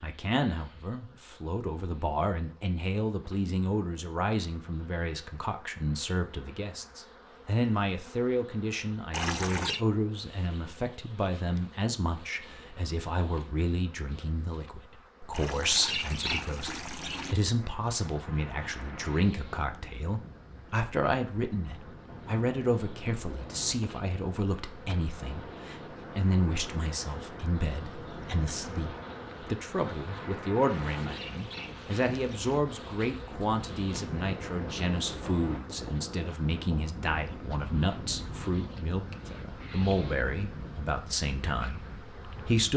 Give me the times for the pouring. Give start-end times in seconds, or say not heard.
9.1-9.8, 15.3-17.4, 30.6-32.6.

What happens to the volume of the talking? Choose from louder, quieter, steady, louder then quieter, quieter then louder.
steady.